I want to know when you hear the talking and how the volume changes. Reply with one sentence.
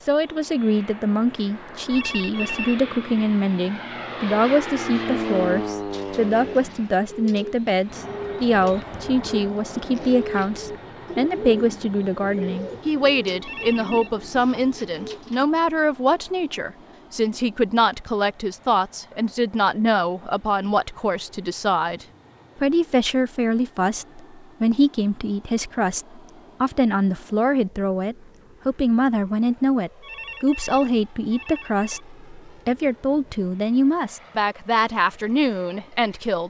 The talking can be heard from 0.1 to 36.4 s, at a steady volume.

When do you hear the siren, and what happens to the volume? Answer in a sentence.
The siren can't be heard in this clip.